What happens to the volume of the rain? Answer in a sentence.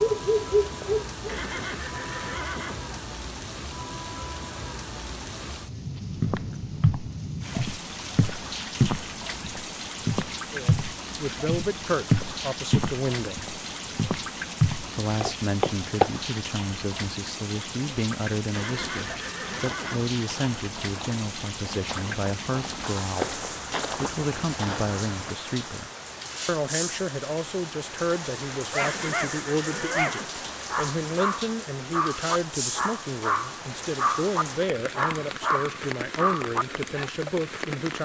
The volume of the rain stays about the same.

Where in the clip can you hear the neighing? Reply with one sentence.
The neighing can be heard from 1.2 to 3.0 s, from 18.5 to 20.0 s and from 28.8 to 30.6 s.